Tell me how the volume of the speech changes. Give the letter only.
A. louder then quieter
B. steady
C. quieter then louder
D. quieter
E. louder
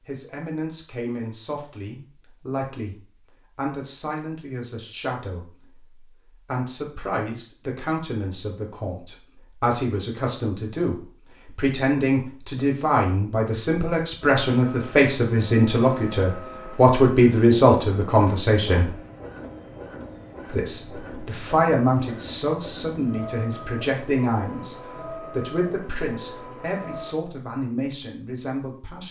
A.